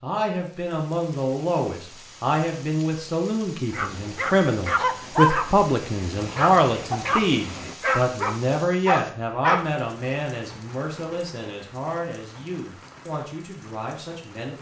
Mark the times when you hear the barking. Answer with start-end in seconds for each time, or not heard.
3.7-9.7.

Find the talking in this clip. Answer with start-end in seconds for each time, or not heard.
0.0-14.5.